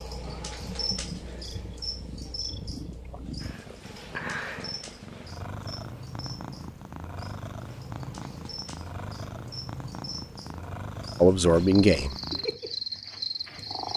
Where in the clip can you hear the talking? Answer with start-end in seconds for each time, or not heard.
11.2-12.2.